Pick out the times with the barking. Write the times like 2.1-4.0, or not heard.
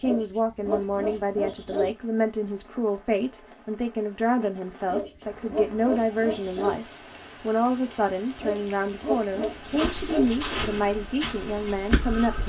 0.0-1.9, 4.8-6.8, 8.4-10.3.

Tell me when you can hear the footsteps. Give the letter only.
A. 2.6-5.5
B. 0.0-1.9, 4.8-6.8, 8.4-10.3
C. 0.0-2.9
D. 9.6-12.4
D.